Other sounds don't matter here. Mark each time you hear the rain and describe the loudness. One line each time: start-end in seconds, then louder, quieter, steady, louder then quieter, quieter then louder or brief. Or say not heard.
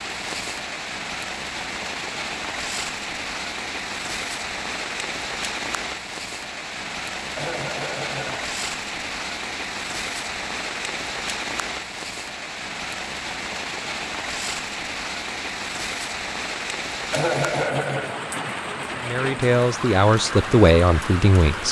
0.0-21.6 steady.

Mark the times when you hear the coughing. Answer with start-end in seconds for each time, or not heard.
7.3-8.5, 17.1-18.1.